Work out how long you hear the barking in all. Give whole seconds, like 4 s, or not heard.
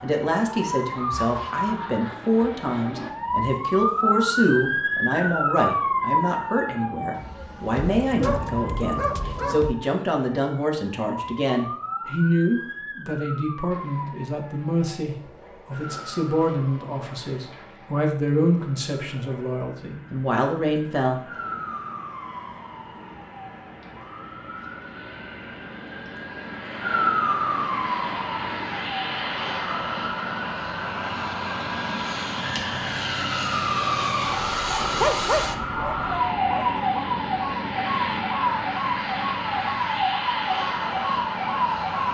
4 s.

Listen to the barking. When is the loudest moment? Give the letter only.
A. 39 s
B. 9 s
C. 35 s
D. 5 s
C.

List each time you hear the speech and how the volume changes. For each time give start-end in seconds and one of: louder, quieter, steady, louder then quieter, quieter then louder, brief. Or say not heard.
0.0-21.2 steady.